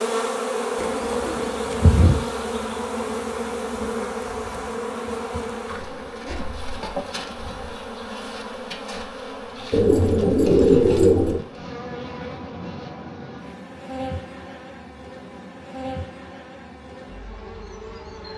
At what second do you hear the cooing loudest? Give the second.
11 s.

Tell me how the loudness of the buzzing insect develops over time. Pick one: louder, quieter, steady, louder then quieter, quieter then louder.
quieter.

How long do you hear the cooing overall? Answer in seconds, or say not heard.
3 s.